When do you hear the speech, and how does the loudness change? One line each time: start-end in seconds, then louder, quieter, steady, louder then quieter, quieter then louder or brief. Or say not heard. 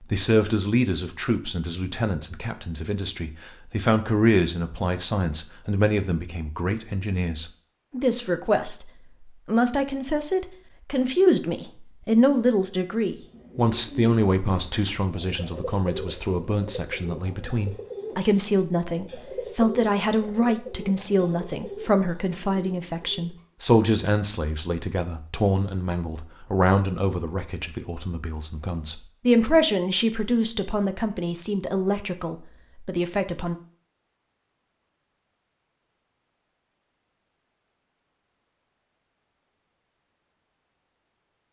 0.0-33.5 steady.